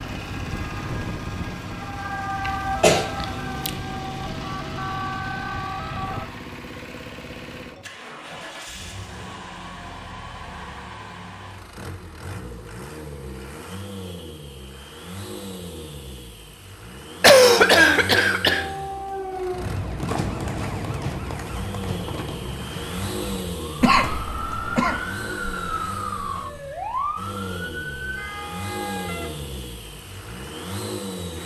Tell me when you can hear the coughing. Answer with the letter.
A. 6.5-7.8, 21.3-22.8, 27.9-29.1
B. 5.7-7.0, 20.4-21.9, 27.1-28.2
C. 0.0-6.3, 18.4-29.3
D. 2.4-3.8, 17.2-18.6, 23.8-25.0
D.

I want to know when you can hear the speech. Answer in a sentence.
You can't hear the speech here.